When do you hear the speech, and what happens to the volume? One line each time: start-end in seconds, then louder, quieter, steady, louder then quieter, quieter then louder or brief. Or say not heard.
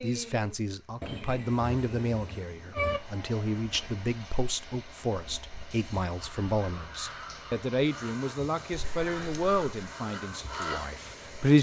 0.0-11.5 steady.